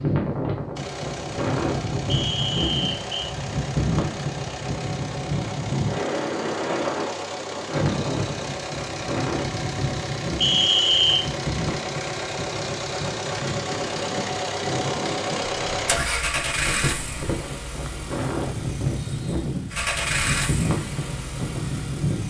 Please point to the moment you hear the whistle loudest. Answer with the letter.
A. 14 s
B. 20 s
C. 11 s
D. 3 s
C.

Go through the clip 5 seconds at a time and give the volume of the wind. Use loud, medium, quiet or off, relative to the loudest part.
loud, loud, medium, loud, loud.